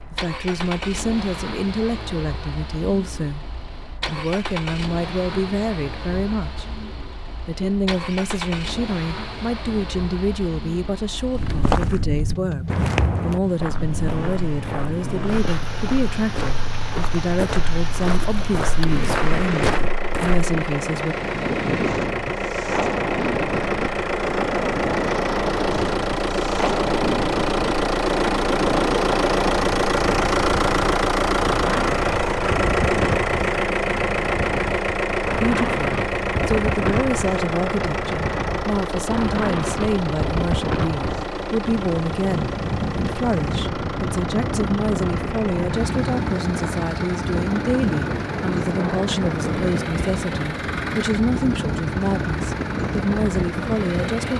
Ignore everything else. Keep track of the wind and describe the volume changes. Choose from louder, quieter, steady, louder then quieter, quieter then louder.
steady.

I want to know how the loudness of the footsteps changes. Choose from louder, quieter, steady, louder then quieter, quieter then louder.
quieter then louder.